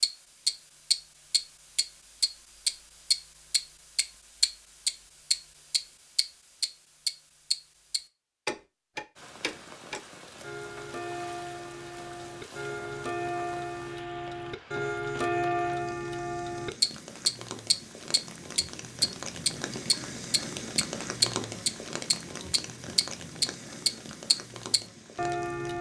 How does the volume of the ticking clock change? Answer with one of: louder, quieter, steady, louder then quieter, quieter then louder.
quieter then louder.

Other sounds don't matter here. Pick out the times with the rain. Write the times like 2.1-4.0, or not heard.
9.2-25.7.